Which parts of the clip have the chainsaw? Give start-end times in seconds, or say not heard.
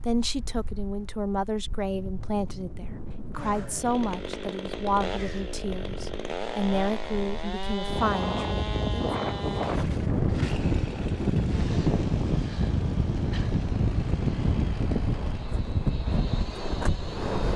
3.4-17.5.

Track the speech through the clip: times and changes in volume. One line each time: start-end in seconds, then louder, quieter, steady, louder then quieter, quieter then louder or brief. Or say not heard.
0.0-9.1 steady.